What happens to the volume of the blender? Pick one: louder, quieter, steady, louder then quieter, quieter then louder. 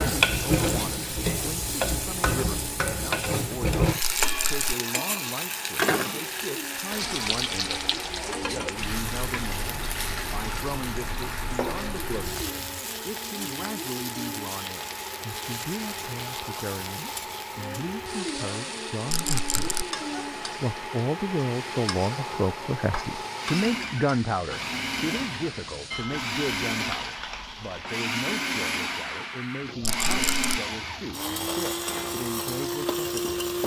louder.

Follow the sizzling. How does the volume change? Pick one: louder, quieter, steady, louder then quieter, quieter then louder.
quieter.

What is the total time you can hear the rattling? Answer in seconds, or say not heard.
2 s.